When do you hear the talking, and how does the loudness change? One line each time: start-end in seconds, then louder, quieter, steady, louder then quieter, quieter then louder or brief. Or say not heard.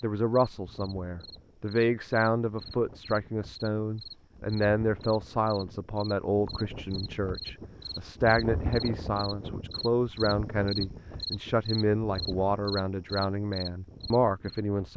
0.0-14.9 steady.